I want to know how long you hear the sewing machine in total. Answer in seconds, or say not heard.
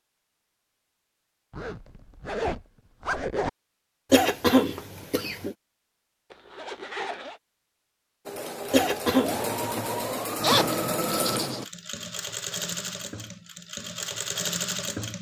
7 s.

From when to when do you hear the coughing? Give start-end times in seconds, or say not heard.
4.1-5.5, 8.7-9.6.